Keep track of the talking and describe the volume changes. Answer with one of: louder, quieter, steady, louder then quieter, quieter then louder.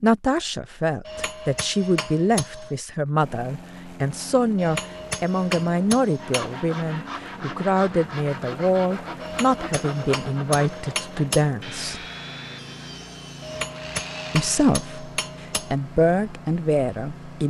steady.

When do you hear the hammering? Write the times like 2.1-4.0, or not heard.
1.1-2.8, 4.5-6.5, 9.2-11.5, 13.4-15.8.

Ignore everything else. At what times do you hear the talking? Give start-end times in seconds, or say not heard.
0.0-12.0, 14.3-17.4.